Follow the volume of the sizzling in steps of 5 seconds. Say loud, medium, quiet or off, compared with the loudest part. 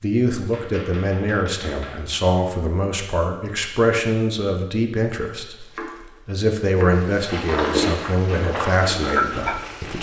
off, loud.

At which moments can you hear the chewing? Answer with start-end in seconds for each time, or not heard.
7.2-9.9.